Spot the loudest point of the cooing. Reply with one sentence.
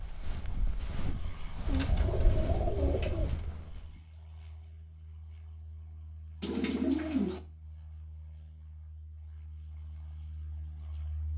The volume of the cooing peaks at 7 seconds.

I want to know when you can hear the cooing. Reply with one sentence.
The cooing can be heard from 1.6 to 3.5 s and from 6.4 to 7.4 s.